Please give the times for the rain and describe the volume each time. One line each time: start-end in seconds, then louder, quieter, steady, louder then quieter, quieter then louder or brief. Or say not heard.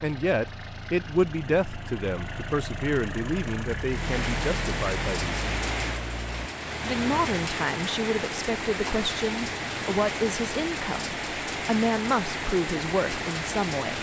3.9-13.9 steady.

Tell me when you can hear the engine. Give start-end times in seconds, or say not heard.
0.0-6.5.